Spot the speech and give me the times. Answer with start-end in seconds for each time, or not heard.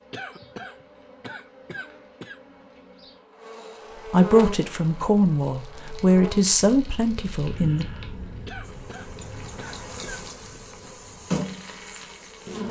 4.0-7.8.